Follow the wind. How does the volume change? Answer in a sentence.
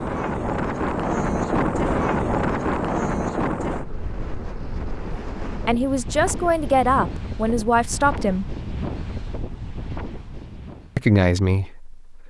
The loudness of the wind goes down.